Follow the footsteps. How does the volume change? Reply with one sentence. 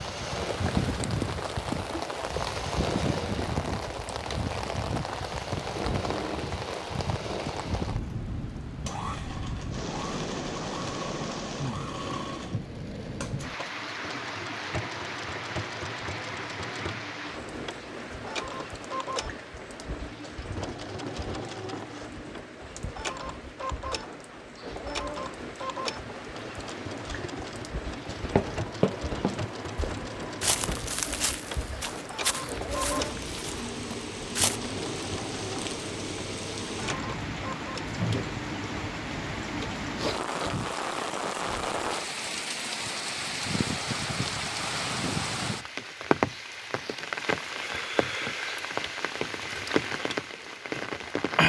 The loudness of the footsteps goes down.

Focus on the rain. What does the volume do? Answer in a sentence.
The loudness of the rain goes down, then up.